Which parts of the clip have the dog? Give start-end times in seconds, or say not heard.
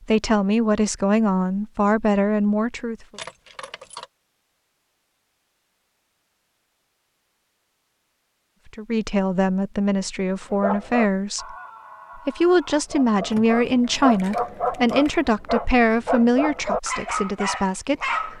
10.5-18.3.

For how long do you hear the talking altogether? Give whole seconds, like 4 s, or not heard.
12 s.